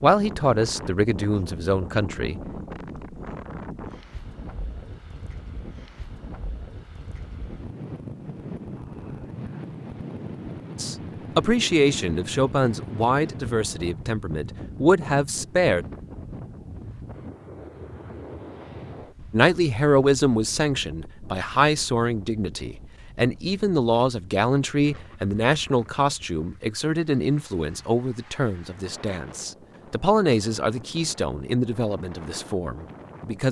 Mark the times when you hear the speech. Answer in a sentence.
The speech can be heard from 0.0 to 2.4 s, from 10.8 to 15.8 s and from 19.3 to 33.4 s.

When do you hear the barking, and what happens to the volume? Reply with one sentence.
The barking can't be heard in this clip.